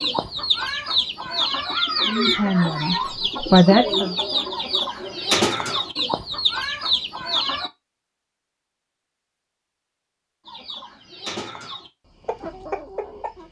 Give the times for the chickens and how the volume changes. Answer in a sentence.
The chickens can be heard from 0.0 to 7.7 s, at a steady volume; and briefly from 10.4 to 13.4 s.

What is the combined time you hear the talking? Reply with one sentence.
The talking can be heard for 2 seconds in total.